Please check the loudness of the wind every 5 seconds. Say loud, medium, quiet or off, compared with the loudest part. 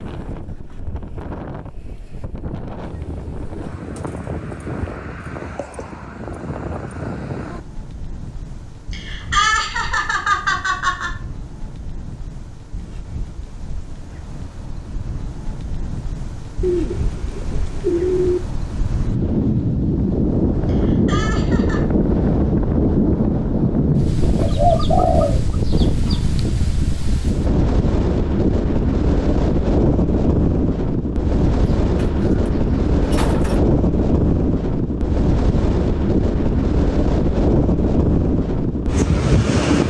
quiet, quiet, quiet, medium, loud, loud, loud, loud.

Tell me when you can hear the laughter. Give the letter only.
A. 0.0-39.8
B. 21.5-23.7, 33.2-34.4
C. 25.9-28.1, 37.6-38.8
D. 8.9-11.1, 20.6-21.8
D.